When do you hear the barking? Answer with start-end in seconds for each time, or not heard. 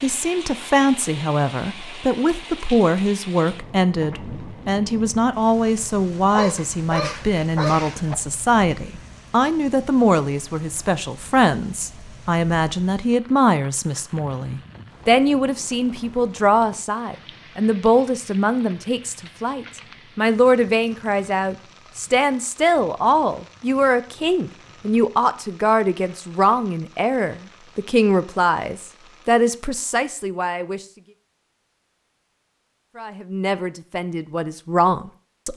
6.3-8.2.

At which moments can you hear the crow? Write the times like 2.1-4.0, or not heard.
not heard.